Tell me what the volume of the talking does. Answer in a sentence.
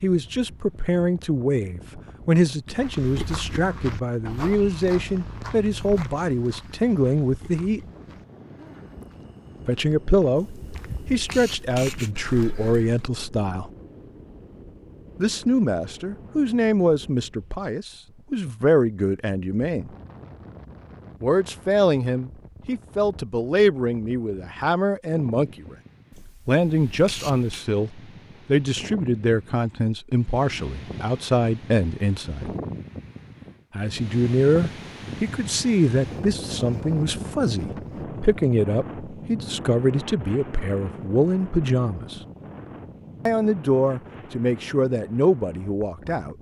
The loudness of the talking stays about the same.